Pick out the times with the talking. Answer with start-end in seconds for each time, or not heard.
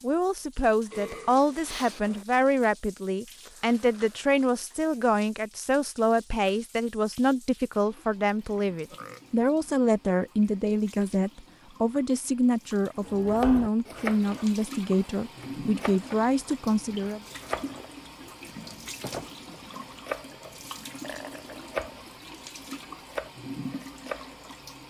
0.0-17.2.